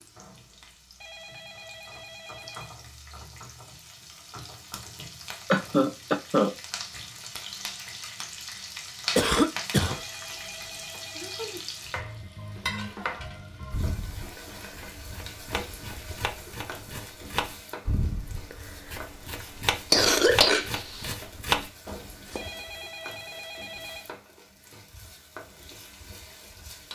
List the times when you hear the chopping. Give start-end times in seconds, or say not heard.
10.9-22.4.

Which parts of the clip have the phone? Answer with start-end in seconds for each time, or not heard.
1.0-2.8, 9.8-11.6, 22.4-24.1.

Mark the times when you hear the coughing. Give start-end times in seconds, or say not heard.
5.5-6.5, 9.2-10.0, 19.9-21.1.